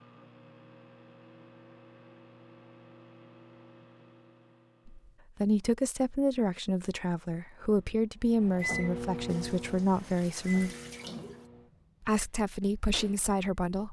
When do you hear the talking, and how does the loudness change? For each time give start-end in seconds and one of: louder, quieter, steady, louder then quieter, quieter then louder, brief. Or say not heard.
4.8-10.8 steady
12.0-13.8 brief.